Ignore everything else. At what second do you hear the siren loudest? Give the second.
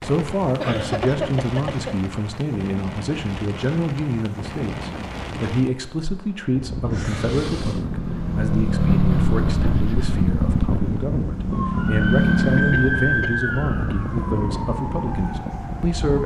13 s.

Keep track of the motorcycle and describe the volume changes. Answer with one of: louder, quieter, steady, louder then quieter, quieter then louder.
quieter then louder.